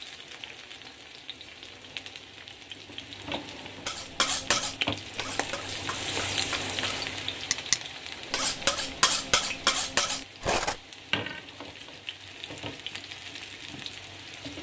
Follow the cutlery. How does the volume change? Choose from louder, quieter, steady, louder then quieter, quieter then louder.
quieter then louder.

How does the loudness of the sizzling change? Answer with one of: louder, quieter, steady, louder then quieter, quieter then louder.
louder then quieter.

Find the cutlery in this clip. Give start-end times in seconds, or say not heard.
3.9-10.8.